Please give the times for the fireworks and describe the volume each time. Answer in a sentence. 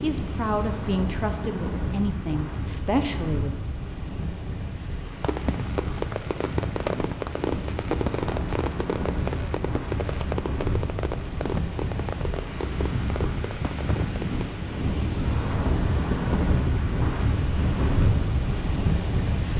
You can hear the fireworks from 5.2 to 14.6 s, getting quieter.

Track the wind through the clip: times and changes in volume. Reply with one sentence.
You can hear the wind from 0.0 to 19.5 s, getting louder.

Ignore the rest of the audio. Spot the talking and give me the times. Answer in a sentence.
The talking can be heard from 0.0 to 3.5 s.